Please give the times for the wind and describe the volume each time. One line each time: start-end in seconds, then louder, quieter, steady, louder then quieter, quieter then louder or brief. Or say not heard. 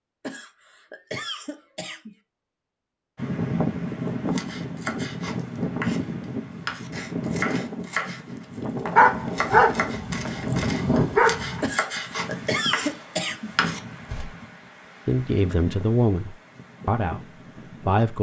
3.1-18.1 quieter.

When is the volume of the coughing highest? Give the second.
13 s.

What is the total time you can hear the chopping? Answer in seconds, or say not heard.
10 s.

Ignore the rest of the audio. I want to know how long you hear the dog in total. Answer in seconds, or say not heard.
3 s.